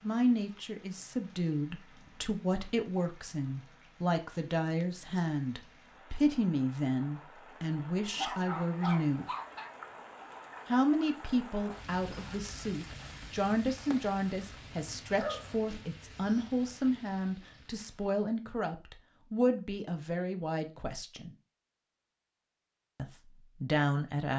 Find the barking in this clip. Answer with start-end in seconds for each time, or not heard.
8.2-9.7, 14.8-15.8.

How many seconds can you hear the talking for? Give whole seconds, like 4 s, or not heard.
21 s.